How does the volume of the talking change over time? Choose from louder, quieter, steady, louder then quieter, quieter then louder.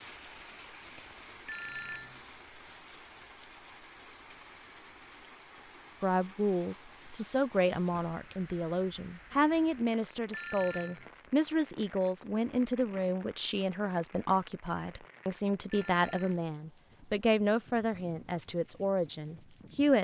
steady.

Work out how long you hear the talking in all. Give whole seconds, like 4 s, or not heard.
14 s.